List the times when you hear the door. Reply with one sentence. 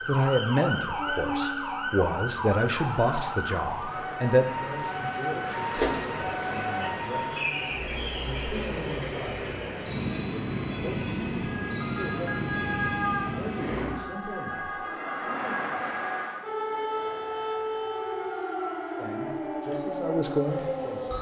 You can hear the door from 5.3 to 6.0 s.